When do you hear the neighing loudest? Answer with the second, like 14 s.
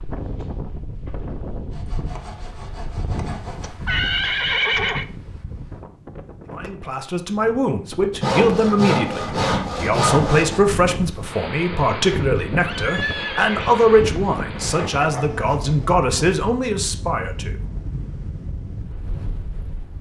5 s.